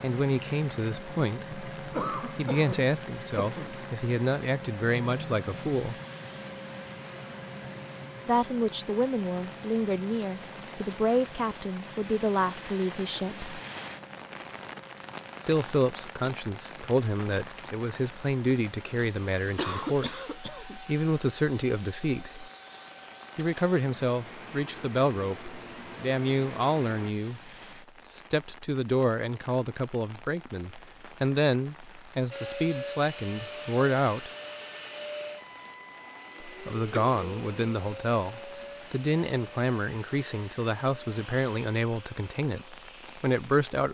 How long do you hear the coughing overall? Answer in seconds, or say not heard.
4 s.